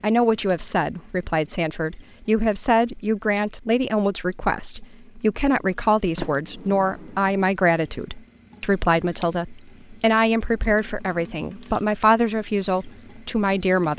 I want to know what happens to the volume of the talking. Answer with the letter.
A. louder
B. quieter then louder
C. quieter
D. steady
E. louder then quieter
D.